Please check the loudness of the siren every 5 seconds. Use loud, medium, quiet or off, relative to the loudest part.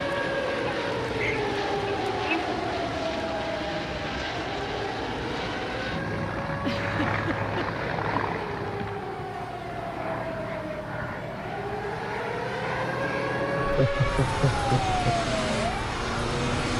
loud, medium, loud, loud.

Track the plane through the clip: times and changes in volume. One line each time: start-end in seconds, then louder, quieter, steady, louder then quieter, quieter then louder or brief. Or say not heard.
0.0-16.7 steady.